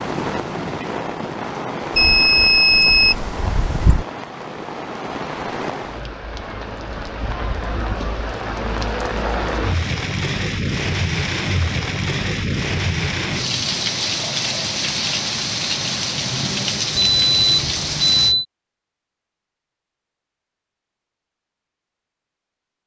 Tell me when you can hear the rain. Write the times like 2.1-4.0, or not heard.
0.0-18.4.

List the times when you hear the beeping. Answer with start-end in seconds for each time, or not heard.
1.9-4.0, 16.9-18.4.